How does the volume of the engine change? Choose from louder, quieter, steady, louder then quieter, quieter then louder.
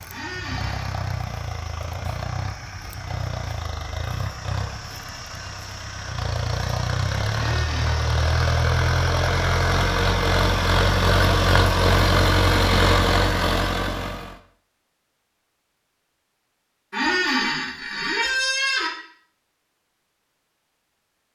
louder.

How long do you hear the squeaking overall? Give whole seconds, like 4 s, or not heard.
4 s.